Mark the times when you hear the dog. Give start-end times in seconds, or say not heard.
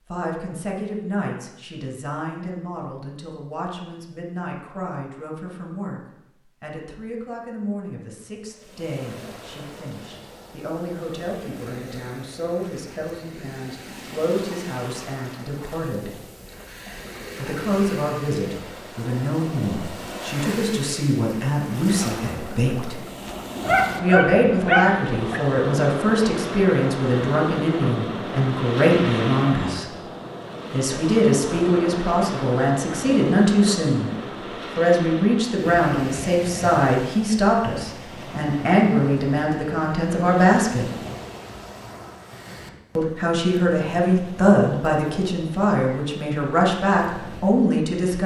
23.6-25.4.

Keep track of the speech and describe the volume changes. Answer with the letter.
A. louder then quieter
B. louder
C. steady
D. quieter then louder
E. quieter
B.